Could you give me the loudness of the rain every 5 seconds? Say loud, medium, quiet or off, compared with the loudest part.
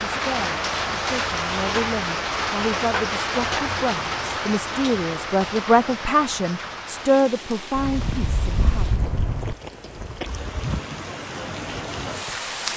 loud, medium, medium.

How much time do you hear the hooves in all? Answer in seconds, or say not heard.
3 s.